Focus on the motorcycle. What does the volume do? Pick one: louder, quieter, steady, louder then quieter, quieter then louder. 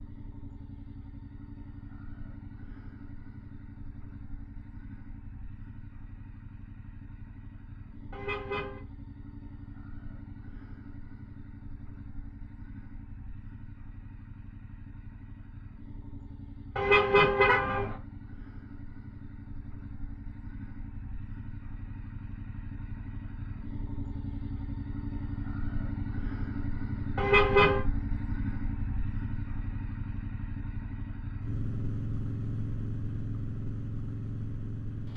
louder.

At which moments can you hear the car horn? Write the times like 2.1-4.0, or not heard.
8.1-8.8, 16.8-17.9, 27.1-27.8.